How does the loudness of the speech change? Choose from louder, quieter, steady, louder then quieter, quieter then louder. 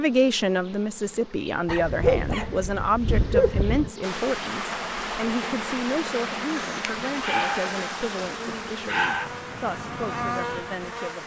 quieter.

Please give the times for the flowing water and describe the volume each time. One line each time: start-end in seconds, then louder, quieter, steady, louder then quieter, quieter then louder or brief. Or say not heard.
4.0-11.2 quieter.